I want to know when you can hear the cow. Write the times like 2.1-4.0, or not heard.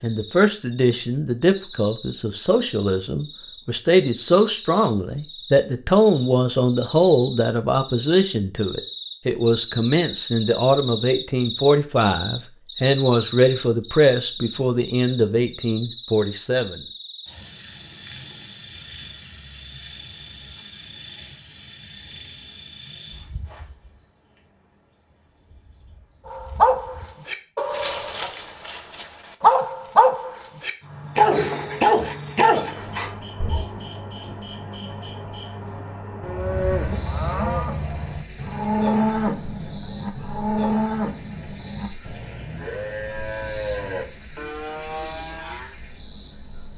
36.2-45.8.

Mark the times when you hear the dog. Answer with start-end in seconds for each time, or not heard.
26.2-33.6.